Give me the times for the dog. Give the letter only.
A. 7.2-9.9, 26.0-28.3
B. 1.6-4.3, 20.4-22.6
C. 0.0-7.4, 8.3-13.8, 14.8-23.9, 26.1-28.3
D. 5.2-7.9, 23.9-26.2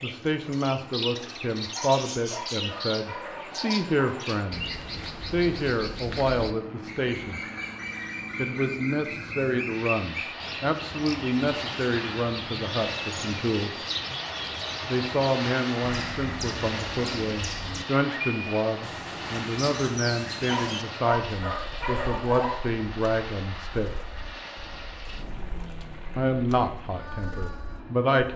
B.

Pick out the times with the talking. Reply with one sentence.
You can hear the talking from 0.0 to 7.4 s, from 8.3 to 13.8 s, from 14.8 to 23.9 s and from 26.1 to 28.3 s.